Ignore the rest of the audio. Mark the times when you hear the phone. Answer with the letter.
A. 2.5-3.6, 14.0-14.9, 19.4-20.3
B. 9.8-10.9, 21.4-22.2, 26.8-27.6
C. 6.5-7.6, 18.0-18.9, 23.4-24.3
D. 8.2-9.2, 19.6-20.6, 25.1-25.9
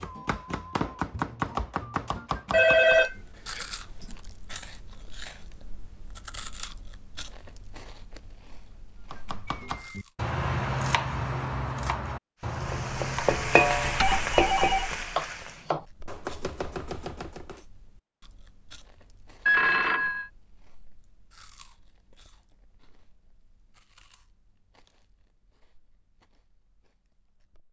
A.